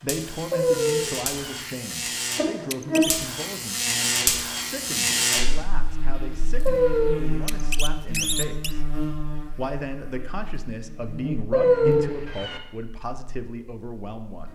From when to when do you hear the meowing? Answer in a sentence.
The meowing can be heard from 0.5 to 1.6 s, from 6.7 to 7.2 s and from 11.5 to 12.6 s.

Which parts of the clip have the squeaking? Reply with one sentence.
The squeaking can be heard from 2.6 to 3.1 s and from 7.4 to 8.8 s.